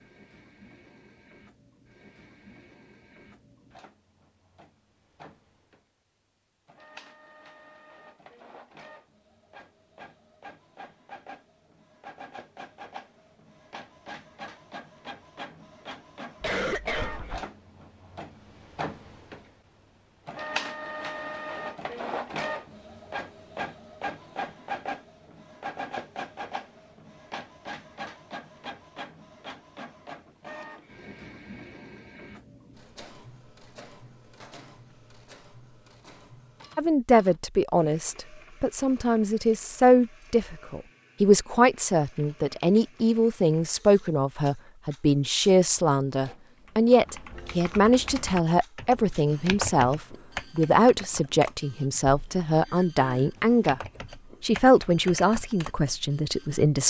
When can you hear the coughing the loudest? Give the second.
17 s.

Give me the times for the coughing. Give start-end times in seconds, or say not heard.
16.4-17.5, 52.6-53.3.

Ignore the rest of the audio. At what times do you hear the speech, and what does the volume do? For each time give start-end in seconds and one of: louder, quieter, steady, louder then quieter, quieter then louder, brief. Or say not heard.
36.8-53.8 steady
54.4-56.8 brief.